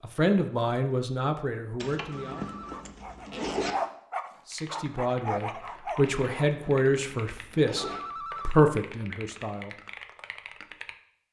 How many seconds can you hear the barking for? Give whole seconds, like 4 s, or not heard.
4 s.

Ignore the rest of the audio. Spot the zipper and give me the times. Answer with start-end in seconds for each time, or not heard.
1.8-3.8, 6.0-8.0.